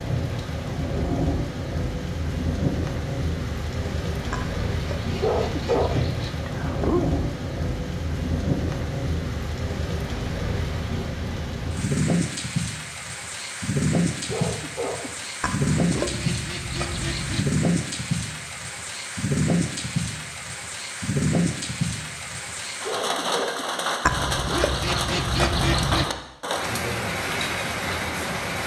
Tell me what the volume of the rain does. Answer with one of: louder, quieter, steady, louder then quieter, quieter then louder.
steady.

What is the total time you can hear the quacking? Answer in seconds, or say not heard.
6 s.